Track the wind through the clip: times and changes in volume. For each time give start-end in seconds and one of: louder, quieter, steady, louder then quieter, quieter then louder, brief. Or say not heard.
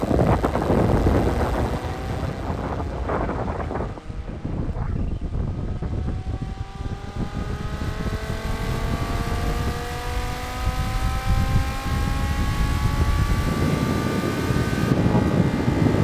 0.0-15.9 quieter then louder.